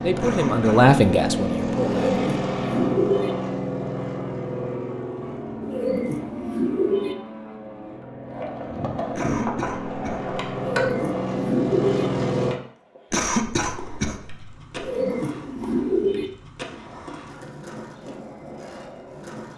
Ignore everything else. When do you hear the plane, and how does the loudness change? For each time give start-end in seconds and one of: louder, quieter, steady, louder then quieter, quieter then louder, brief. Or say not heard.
0.0-12.6 quieter then louder.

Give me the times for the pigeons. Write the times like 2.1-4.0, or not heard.
2.0-3.3, 5.6-7.2, 10.6-12.1, 14.8-16.2.